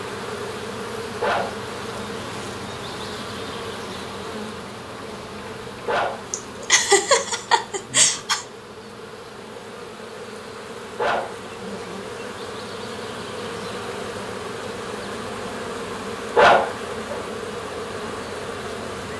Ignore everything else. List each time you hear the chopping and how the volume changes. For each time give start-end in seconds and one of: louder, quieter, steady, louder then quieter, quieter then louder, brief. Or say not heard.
not heard.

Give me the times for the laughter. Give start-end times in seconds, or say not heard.
6.3-8.4.